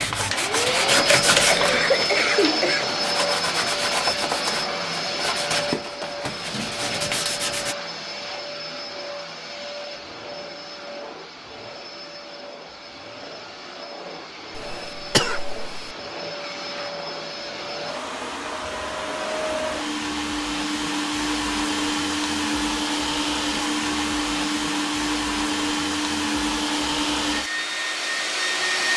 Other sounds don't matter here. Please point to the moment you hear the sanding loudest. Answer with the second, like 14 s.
1 s.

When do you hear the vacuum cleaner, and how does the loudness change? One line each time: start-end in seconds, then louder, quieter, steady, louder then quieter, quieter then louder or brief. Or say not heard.
0.0-28.9 quieter then louder.